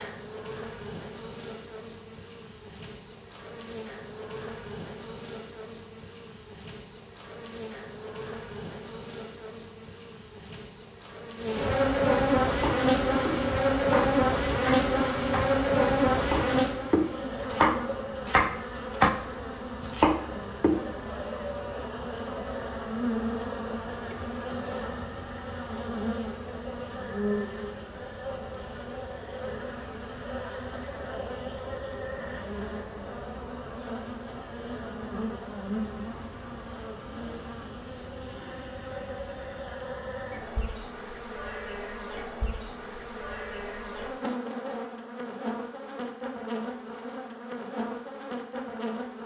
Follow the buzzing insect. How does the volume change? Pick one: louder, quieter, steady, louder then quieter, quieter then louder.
louder then quieter.